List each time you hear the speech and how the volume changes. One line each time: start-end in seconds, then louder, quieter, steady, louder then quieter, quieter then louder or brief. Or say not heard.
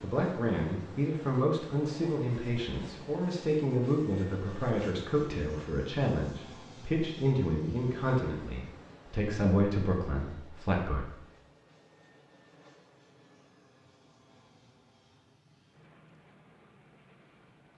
0.0-11.1 steady.